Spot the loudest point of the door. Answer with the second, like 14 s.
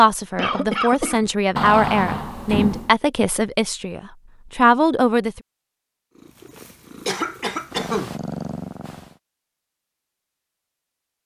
2 s.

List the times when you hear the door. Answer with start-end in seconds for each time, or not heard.
1.6-3.0.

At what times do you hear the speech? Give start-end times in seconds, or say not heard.
0.0-5.4.